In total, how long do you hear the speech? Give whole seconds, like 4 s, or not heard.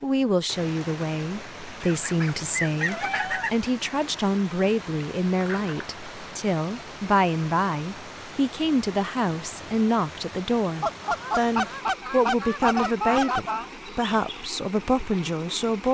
16 s.